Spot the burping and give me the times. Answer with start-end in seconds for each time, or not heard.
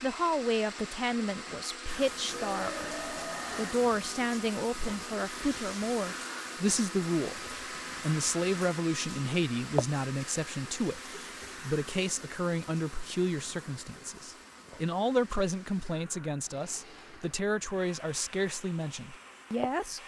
2.2-3.8.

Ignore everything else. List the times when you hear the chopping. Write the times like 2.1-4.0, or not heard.
not heard.